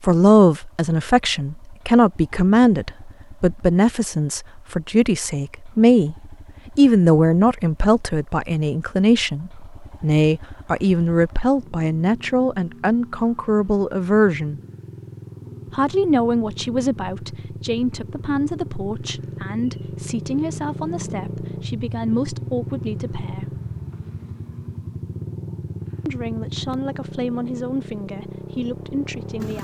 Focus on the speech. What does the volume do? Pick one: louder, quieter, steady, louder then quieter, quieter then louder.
quieter.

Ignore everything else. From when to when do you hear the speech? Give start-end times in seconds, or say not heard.
0.0-6.2, 6.8-14.6, 15.7-23.6, 26.1-29.5.